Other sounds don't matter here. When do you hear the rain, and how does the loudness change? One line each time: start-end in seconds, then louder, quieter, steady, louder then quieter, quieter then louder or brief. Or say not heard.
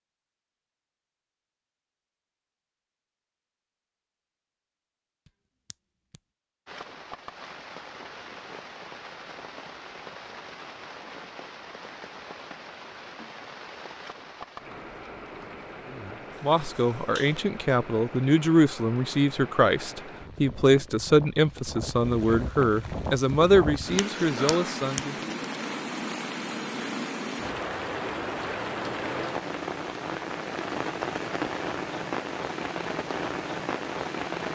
6.7-34.4 louder.